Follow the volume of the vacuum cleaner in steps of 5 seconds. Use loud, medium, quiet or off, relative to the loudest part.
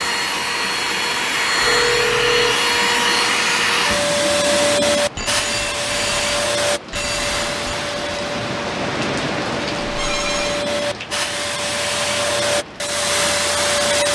loud, medium, loud.